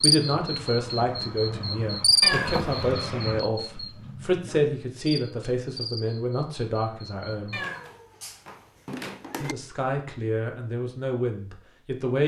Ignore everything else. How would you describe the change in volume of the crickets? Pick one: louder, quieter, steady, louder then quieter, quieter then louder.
louder then quieter.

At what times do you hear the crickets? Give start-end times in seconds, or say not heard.
0.0-7.6.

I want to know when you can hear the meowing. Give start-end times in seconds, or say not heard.
2.2-2.7, 7.5-9.6.